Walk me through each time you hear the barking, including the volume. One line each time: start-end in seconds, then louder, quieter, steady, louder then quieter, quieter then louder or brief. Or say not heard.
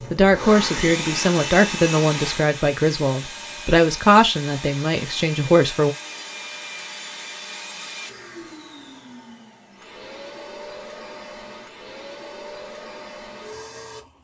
not heard.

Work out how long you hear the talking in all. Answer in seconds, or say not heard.
6 s.